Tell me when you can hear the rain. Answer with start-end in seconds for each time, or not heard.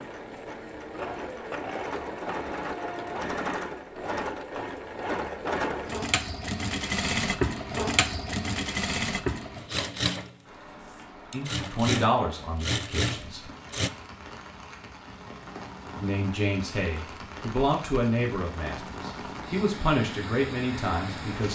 10.4-21.5.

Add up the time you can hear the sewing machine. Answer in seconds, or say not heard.
14 s.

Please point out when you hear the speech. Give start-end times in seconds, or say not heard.
11.3-13.4, 15.9-21.5.